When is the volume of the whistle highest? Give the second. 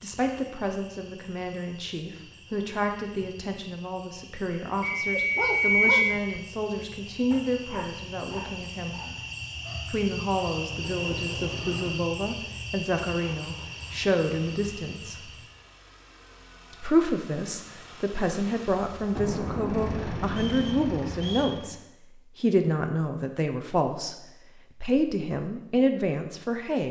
6 s.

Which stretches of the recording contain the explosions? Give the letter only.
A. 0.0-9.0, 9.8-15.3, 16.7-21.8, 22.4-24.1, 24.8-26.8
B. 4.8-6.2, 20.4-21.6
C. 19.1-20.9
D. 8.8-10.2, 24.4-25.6
C.